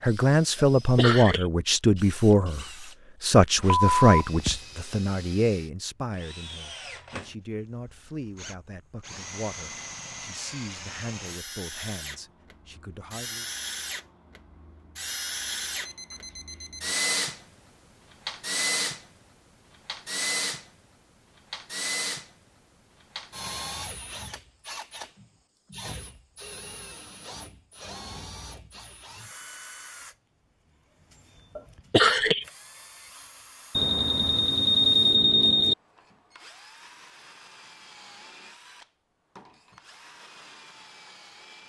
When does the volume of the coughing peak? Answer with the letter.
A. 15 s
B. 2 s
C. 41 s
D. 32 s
D.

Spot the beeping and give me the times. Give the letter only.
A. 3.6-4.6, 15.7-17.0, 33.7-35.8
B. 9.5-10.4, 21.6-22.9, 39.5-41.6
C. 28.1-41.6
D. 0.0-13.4
A.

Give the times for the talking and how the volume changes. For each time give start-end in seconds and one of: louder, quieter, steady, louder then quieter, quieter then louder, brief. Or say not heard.
0.0-13.4 quieter.